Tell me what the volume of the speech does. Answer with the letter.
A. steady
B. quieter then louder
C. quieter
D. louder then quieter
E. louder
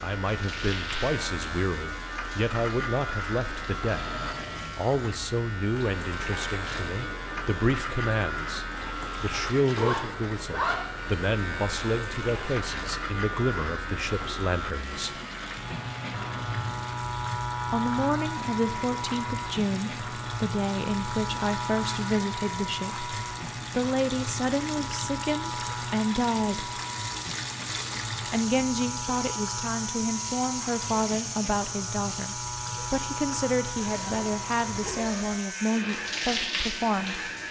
A.